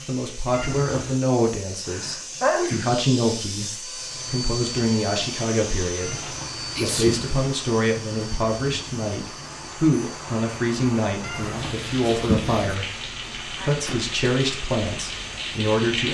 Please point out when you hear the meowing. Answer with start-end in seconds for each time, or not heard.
0.5-1.2, 6.0-7.3, 11.2-12.8.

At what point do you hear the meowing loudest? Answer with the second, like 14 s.
12 s.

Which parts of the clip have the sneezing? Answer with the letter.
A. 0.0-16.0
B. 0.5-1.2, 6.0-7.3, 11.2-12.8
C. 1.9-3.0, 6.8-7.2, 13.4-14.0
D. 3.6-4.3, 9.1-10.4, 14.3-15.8
C.